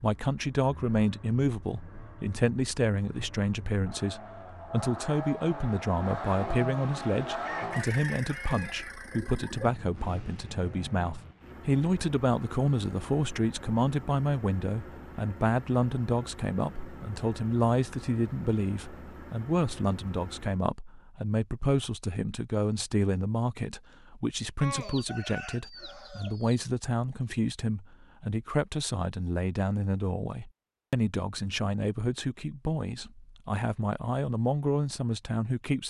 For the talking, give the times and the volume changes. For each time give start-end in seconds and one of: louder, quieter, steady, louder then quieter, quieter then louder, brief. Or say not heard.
0.0-35.8 steady.